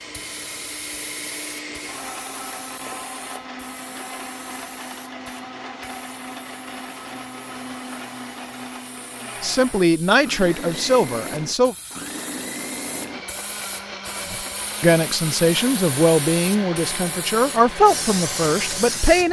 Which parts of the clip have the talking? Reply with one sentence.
You can hear the talking from 9.4 to 11.8 s and from 14.3 to 19.2 s.